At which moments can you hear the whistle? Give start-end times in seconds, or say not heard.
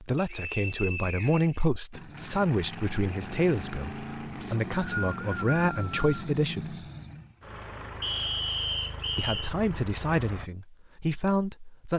0.1-1.6, 4.4-6.0, 8.0-9.5.